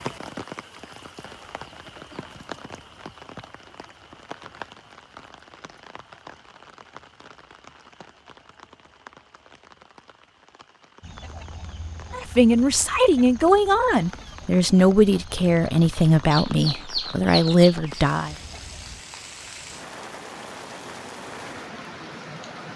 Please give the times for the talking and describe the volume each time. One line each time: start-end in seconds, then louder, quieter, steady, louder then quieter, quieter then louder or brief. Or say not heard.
12.1-18.4 steady.